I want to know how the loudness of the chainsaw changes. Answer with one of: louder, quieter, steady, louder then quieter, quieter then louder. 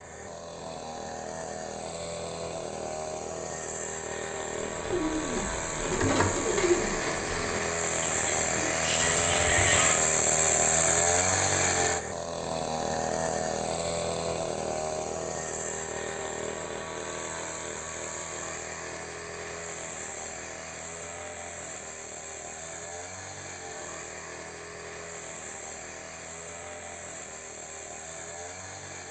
louder then quieter.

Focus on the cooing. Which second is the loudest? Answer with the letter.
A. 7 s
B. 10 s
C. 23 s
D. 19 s
A.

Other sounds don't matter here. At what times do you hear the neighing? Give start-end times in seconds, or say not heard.
9.0-10.0.